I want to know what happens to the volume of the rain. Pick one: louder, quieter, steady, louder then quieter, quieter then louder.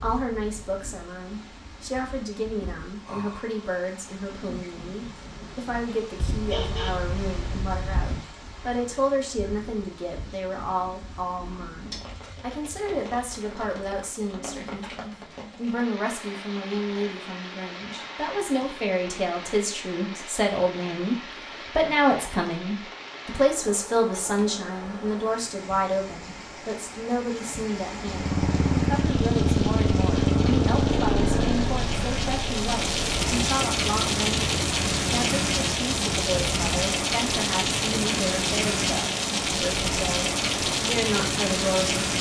louder.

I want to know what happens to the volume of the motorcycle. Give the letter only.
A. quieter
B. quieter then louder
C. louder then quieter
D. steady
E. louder
A.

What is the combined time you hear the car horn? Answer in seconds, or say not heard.
2 s.